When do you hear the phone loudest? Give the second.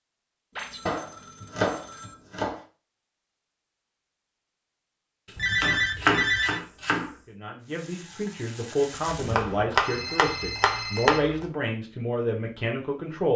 6 s.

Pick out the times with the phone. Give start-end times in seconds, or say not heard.
0.5-2.2, 5.3-6.6, 9.2-11.2.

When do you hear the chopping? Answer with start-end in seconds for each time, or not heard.
0.8-2.6, 5.5-7.1, 9.2-11.4.